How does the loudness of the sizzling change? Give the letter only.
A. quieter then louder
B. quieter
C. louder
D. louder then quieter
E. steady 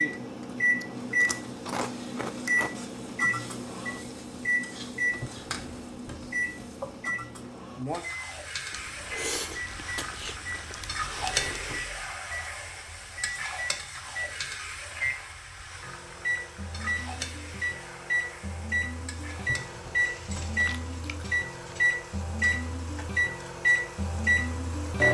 D.